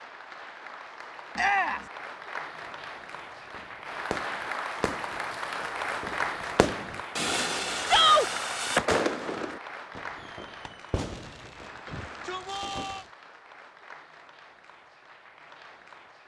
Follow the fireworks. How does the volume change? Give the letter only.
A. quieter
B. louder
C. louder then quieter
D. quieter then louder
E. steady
C.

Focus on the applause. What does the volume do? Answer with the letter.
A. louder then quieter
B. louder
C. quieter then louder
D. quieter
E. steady
A.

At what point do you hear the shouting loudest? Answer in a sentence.
The loudest moment of the shouting is at 8 seconds.